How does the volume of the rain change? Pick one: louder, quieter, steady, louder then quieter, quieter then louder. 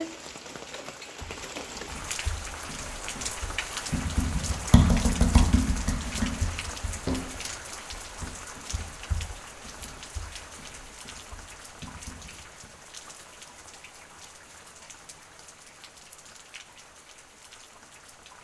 quieter.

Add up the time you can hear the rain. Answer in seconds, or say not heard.
18 s.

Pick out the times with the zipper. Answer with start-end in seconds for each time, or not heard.
not heard.